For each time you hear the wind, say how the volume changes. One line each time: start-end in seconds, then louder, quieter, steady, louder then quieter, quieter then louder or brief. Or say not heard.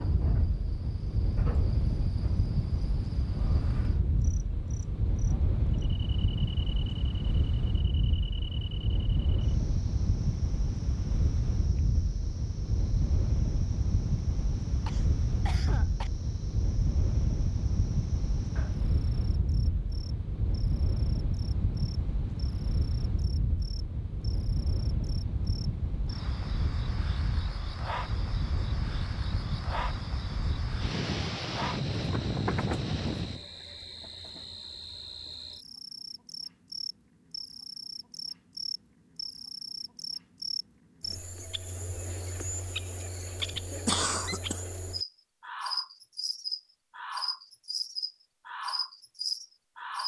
0.0-33.5 steady.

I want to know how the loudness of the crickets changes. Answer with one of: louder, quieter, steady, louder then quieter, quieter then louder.
quieter then louder.